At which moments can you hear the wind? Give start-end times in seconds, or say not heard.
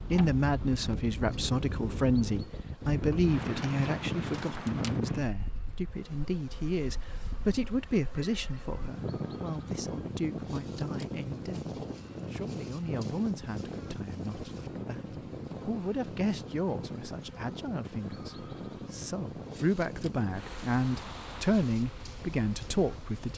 0.0-23.3.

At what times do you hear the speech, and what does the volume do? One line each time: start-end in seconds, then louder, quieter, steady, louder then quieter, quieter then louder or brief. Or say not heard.
0.1-23.3 quieter then louder.